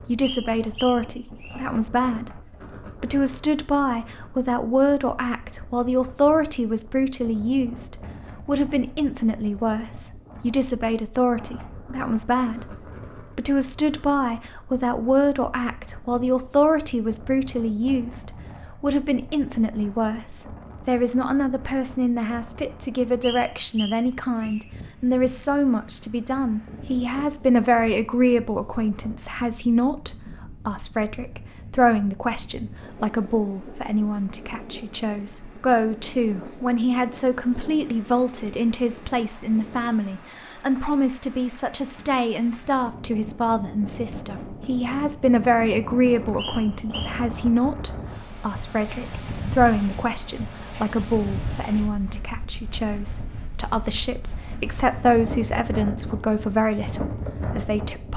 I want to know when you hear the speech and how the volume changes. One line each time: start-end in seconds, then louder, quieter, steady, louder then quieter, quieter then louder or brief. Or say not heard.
0.1-2.4 brief
3.0-12.8 steady
13.3-58.1 steady.